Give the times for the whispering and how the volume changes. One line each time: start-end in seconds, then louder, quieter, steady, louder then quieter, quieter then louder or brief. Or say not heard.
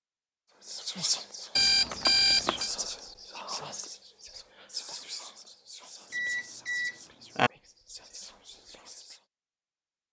0.6-9.2 quieter.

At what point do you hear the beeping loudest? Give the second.
2 s.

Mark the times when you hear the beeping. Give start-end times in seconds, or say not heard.
1.6-2.7, 6.1-7.5.